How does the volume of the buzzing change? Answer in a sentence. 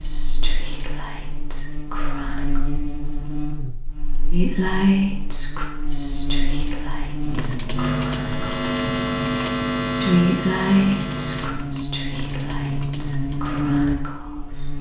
The loudness of the buzzing goes up.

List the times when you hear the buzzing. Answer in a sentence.
You can hear the buzzing from 0.0 to 14.7 s.